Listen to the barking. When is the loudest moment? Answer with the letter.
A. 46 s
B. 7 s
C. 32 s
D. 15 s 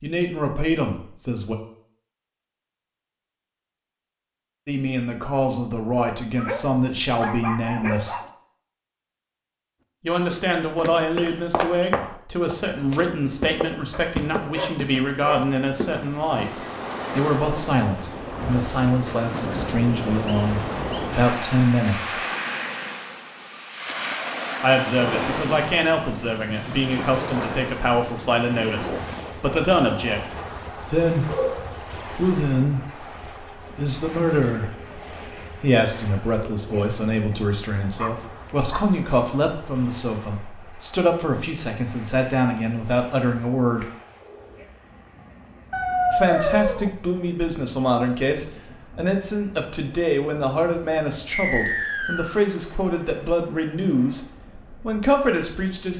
A.